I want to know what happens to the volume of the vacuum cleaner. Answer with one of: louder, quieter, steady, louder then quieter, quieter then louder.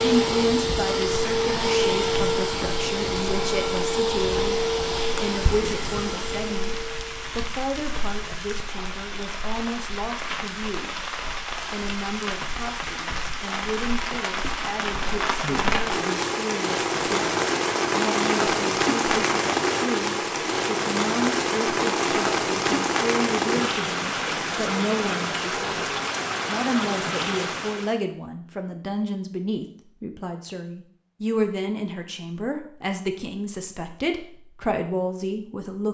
quieter.